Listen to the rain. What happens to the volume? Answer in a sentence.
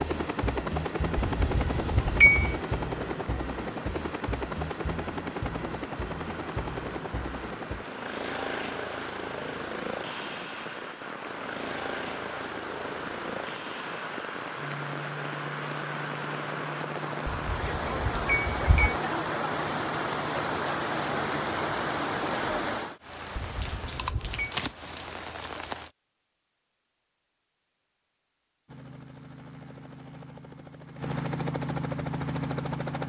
The volume of the rain goes up.